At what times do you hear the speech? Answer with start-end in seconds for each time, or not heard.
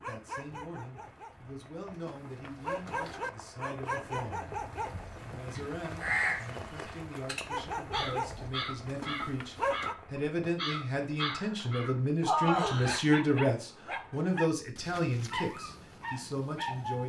0.1-4.5, 5.2-17.0.